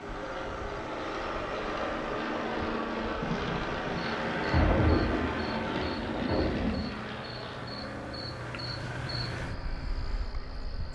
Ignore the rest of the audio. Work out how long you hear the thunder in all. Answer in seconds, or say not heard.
4 s.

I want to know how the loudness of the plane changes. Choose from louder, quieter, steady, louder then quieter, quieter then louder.
quieter.